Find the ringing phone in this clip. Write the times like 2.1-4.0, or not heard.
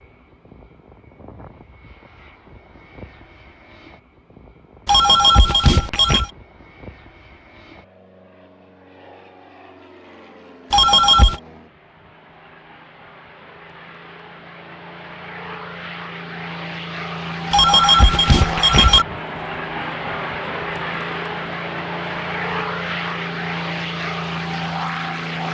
4.8-6.3, 10.7-11.4, 17.5-19.1.